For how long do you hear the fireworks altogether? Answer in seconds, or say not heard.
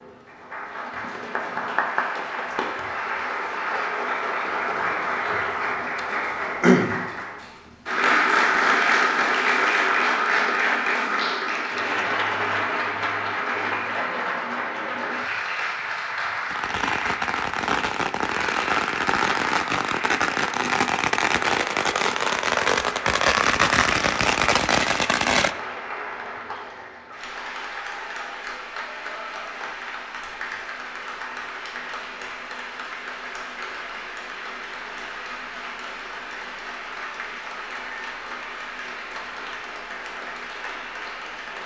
9 s.